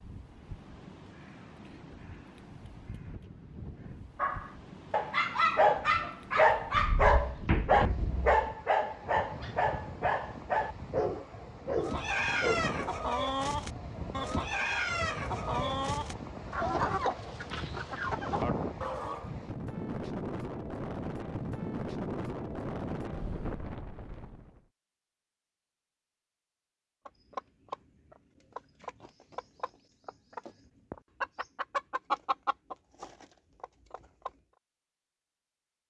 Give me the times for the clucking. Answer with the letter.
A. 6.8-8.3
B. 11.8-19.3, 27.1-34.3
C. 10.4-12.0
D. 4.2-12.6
B.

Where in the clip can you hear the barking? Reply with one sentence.
You can hear the barking from 4.2 to 12.6 s.